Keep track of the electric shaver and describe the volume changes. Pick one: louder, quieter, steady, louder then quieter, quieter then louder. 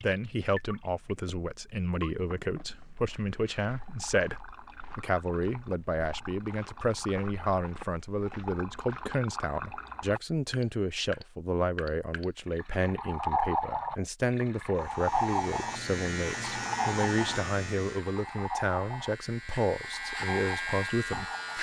quieter then louder.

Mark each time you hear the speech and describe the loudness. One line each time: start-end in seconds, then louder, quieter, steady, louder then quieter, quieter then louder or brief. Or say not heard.
0.0-21.5 steady.